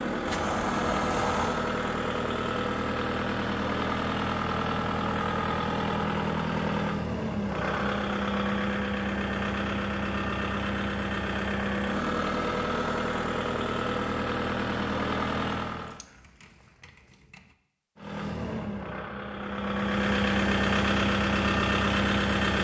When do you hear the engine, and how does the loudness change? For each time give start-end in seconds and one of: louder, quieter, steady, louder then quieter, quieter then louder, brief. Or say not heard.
0.0-16.0 steady
17.9-22.5 louder.